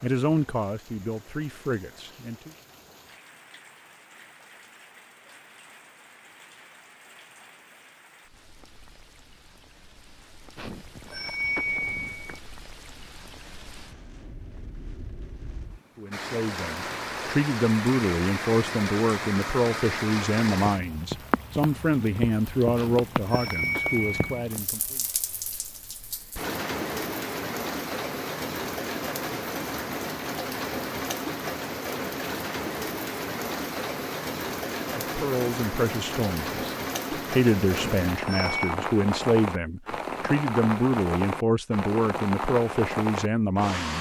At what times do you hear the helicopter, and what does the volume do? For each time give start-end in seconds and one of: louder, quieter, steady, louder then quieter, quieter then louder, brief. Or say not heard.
not heard.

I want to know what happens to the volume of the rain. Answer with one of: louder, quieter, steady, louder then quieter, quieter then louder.
louder.